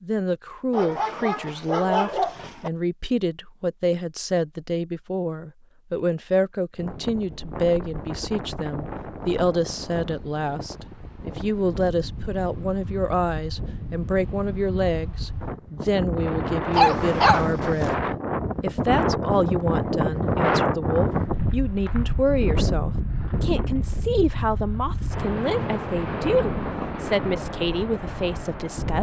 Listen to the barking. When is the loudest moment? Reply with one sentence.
The loudest moment of the barking is at 17 seconds.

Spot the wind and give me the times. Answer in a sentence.
You can hear the wind from 6.8 to 28.9 s.